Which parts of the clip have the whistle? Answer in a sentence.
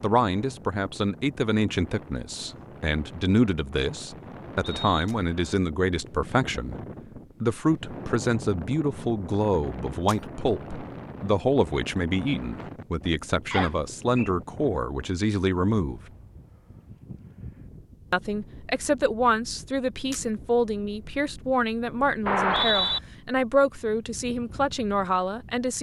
The whistle can be heard from 4.6 to 5.6 s, from 13.5 to 14.3 s and from 22.2 to 23.0 s.